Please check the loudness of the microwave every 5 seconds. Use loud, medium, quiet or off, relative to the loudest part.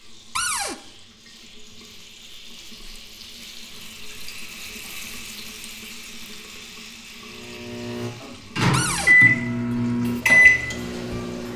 off, loud, loud.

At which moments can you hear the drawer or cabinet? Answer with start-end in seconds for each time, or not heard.
0.3-0.8, 8.7-9.2.